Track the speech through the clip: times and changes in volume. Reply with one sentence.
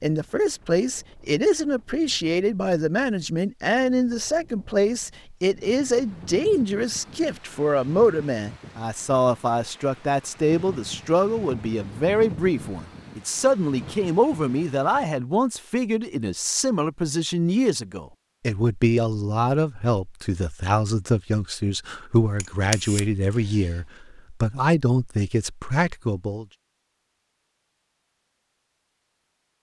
The speech can be heard from 0.0 to 26.4 s, at a steady volume.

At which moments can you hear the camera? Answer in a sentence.
The camera can be heard from 22.4 to 23.8 s.